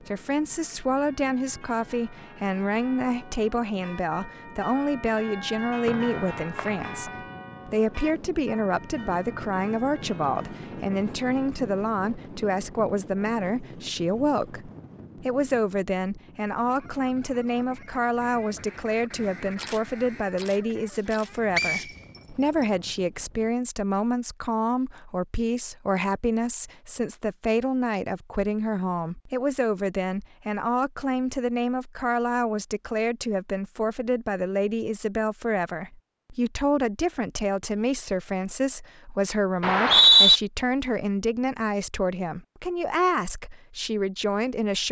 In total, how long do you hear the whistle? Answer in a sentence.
The whistle can be heard for 3 seconds in total.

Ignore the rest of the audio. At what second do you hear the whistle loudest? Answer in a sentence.
The loudest moment of the whistle is at 40 seconds.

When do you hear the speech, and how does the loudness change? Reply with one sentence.
The speech can be heard from 0.0 to 44.8 s, at a steady volume.